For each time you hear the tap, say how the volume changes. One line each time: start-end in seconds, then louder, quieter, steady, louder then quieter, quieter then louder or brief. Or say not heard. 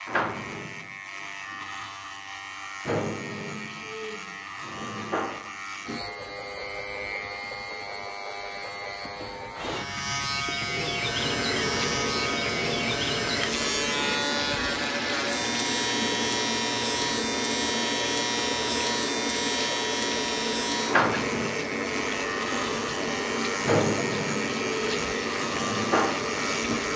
10.8-26.9 steady.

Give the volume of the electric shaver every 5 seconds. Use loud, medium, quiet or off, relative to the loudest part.
medium, medium, loud, loud, loud, loud.